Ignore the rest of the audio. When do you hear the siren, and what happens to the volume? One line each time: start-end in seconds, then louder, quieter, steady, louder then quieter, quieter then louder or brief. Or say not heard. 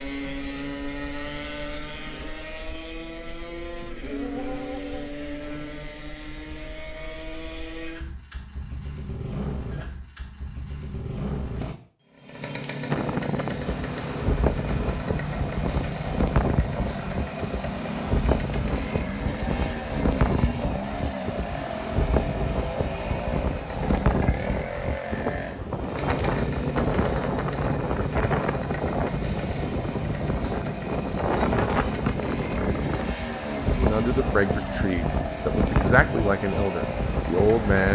not heard.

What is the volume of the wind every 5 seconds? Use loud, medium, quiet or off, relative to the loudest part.
off, off, loud, loud, loud, loud, loud, loud.